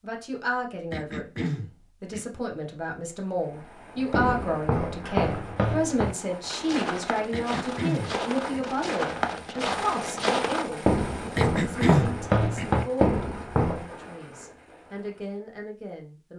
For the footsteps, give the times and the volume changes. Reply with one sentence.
You can hear the footsteps from 4.0 to 13.9 s, getting quieter then louder.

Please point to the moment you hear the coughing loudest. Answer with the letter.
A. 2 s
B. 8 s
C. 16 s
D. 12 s
D.